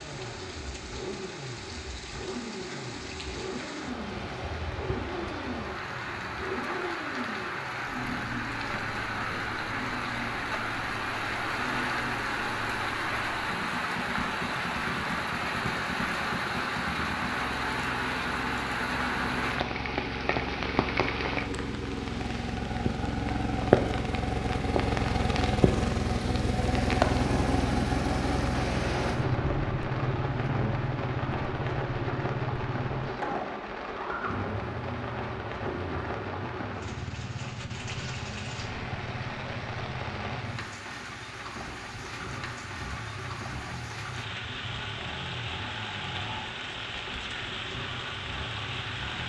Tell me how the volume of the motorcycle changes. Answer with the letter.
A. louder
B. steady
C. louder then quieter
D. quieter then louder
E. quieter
C.